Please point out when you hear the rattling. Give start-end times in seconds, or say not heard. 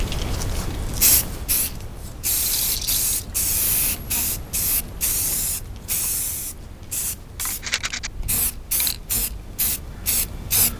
2.3-3.2, 7.5-8.1.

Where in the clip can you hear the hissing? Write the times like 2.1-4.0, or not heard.
0.0-10.7.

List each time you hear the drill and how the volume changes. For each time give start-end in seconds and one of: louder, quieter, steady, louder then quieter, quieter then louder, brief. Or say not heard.
not heard.